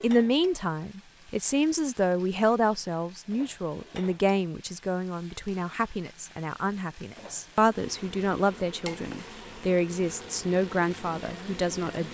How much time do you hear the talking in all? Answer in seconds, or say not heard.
12 s.